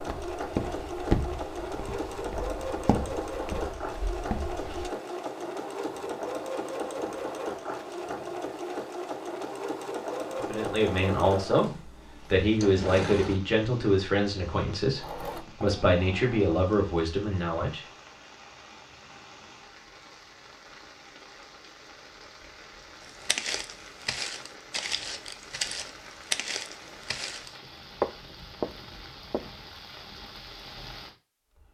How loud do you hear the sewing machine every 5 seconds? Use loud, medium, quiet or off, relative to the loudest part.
loud, loud, loud, medium, off, off, off.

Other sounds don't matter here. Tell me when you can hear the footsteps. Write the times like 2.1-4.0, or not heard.
0.0-4.9, 23.2-29.4.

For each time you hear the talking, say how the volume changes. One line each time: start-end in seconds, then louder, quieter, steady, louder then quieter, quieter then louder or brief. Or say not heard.
10.3-17.9 steady.